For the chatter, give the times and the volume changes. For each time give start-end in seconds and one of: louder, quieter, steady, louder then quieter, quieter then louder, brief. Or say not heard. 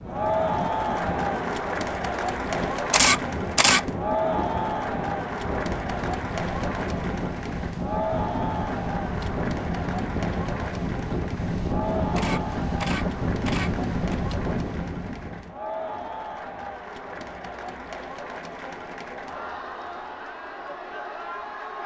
0.1-21.8 quieter.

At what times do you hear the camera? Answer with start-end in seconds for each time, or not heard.
2.9-3.8, 12.2-14.2.